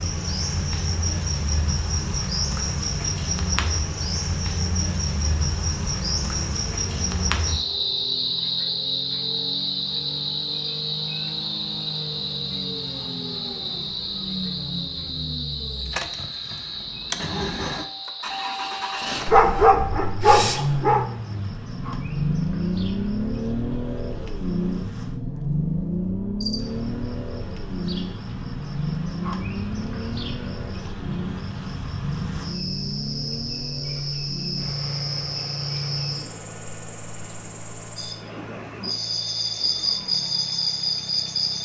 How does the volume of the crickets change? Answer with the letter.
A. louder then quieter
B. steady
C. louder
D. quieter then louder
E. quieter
D.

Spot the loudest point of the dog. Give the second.
20 s.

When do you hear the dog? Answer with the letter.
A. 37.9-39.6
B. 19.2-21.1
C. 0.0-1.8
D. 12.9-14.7
B.